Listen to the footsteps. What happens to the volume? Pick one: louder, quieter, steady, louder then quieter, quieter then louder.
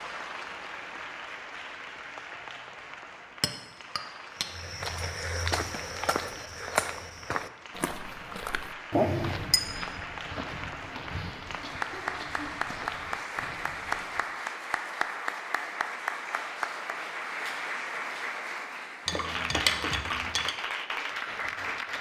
quieter.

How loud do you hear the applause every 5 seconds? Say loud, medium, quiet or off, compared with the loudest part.
medium, medium, loud, loud, loud.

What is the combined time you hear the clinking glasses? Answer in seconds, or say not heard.
4 s.